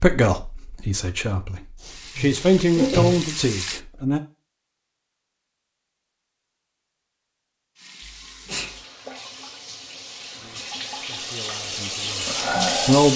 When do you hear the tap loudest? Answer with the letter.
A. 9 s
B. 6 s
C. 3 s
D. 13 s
D.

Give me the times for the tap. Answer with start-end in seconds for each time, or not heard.
1.8-3.8, 7.8-13.1.